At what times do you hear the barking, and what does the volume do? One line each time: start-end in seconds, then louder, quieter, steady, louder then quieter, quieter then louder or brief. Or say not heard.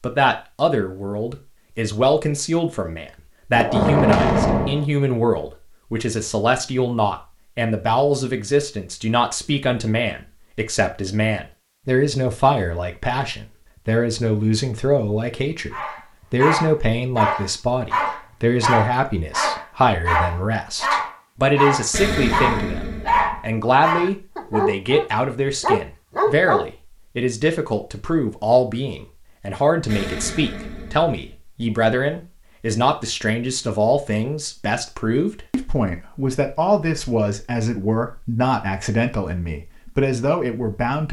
15.7-26.6 steady.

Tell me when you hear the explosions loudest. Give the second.
4 s.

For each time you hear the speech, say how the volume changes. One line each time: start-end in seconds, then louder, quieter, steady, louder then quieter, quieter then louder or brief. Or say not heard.
0.0-41.0 steady.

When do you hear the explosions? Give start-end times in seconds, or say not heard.
3.5-4.8, 21.9-23.4, 29.9-31.4.